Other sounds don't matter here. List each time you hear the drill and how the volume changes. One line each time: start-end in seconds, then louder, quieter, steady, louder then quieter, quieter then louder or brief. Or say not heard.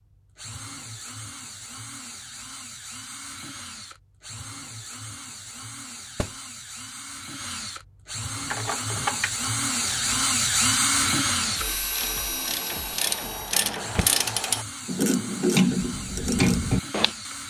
0.0-17.4 louder then quieter.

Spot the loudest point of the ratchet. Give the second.
16 s.